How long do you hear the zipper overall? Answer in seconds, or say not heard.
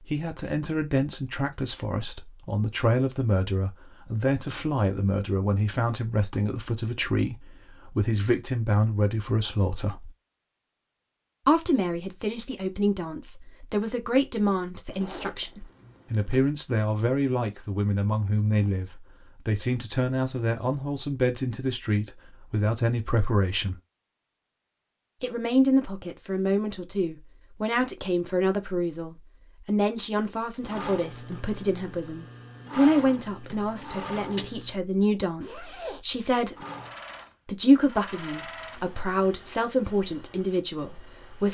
2 s.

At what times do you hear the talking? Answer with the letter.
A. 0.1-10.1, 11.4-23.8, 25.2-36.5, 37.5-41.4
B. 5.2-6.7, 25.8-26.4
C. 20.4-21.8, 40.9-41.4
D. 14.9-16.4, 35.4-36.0
A.